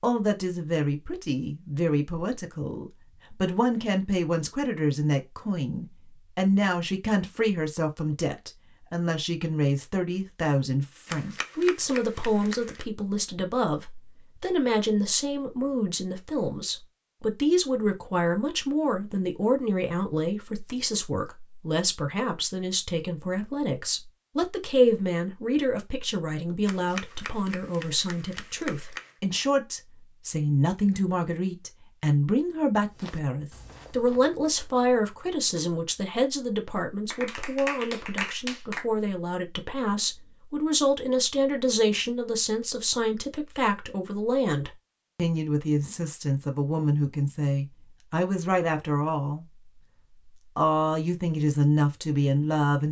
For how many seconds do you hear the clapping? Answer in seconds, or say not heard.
6 s.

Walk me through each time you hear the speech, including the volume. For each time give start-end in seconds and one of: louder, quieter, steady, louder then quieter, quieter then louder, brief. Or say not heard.
0.0-49.5 steady
50.5-52.8 brief.